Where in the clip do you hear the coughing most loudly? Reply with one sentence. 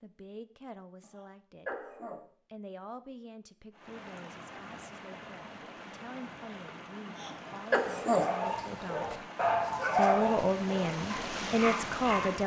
The loudest moment of the coughing is at 8 seconds.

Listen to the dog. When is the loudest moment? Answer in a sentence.
The loudest moment of the dog is at 10 seconds.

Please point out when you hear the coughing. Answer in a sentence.
You can hear the coughing from 1.0 to 2.2 s and from 7.1 to 8.3 s.